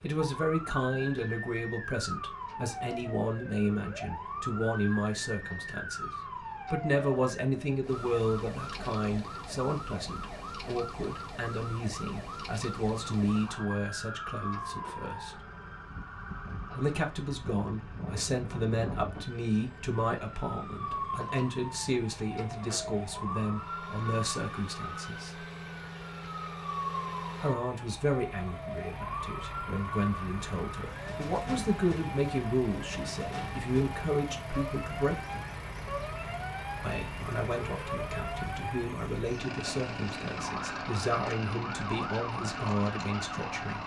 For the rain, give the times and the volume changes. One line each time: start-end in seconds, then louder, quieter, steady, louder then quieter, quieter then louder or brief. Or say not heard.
not heard.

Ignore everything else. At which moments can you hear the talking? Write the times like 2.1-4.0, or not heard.
0.0-15.4, 16.8-25.4, 27.4-35.5, 36.8-43.8.